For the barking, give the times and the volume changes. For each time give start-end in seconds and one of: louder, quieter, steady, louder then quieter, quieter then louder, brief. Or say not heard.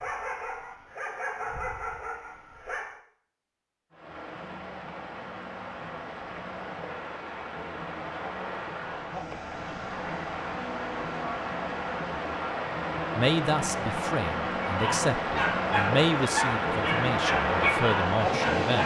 0.0-3.0 brief
14.7-18.8 steady.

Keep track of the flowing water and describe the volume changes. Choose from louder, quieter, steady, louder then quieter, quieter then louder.
louder.